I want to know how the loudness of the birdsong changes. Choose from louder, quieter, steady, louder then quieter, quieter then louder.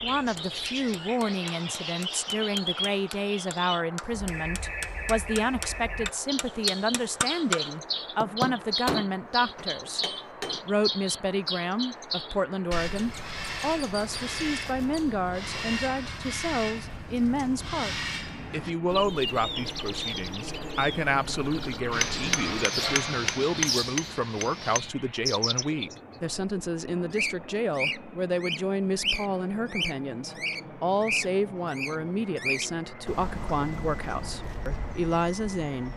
steady.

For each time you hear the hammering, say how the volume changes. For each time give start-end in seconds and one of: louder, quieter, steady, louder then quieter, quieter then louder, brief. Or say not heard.
0.1-10.6 louder
21.9-24.8 brief.